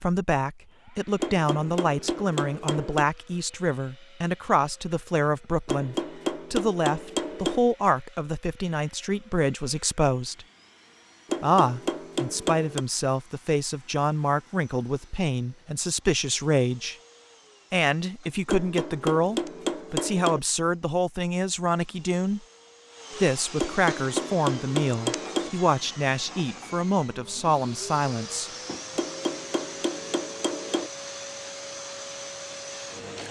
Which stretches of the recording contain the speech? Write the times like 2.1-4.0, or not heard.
0.0-10.4, 11.4-16.9, 17.7-22.4, 23.2-28.5.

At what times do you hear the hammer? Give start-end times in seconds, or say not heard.
1.2-3.1, 5.7-7.6, 11.2-12.8, 18.4-20.4, 23.6-25.5, 28.9-30.9.